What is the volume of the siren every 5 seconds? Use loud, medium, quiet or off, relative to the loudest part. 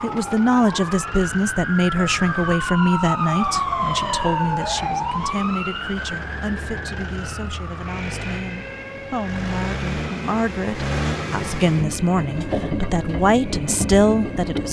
loud, medium, quiet.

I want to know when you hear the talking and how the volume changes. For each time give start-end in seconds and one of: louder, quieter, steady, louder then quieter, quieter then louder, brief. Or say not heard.
0.0-14.6 quieter then louder.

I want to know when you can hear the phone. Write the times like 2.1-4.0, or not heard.
not heard.